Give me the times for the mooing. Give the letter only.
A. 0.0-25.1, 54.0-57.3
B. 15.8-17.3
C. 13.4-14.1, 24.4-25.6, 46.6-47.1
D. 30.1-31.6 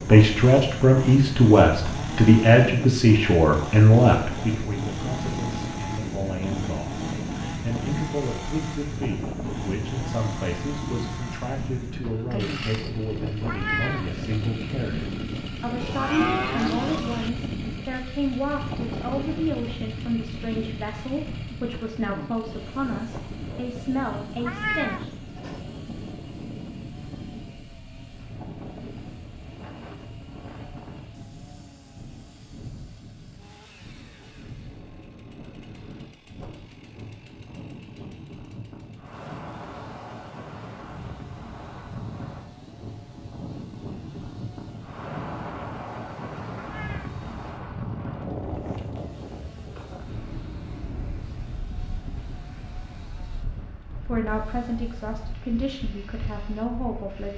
B.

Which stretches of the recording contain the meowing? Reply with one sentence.
The meowing can be heard from 13.4 to 14.1 s, from 24.4 to 25.6 s and from 46.6 to 47.1 s.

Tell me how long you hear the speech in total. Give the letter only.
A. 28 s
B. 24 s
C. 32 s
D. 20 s
A.